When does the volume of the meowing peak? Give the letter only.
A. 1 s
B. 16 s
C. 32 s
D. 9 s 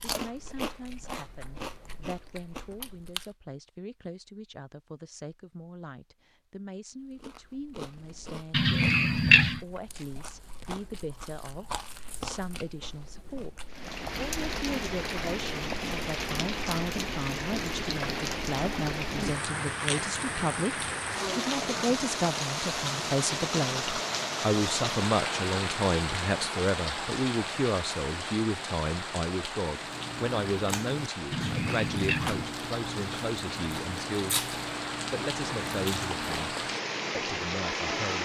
D.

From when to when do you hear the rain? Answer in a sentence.
You can hear the rain from 13.7 to 38.1 s.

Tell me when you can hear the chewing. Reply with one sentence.
The chewing can be heard from 0.0 to 3.3 s, from 7.0 to 13.9 s and from 29.7 to 36.9 s.